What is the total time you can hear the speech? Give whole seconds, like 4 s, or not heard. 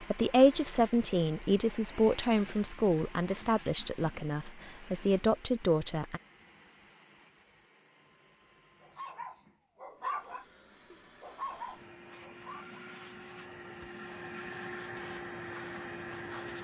6 s.